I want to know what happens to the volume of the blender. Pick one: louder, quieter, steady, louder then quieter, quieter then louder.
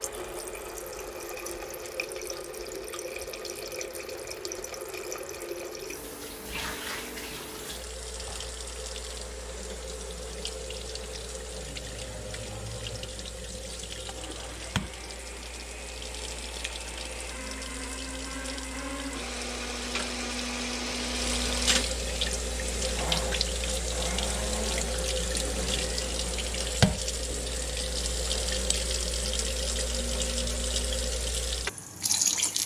louder then quieter.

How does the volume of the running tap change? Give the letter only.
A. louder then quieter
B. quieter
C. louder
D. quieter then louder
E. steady
C.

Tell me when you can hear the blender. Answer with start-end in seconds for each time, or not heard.
0.0-31.1.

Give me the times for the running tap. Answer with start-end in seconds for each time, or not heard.
0.0-32.6.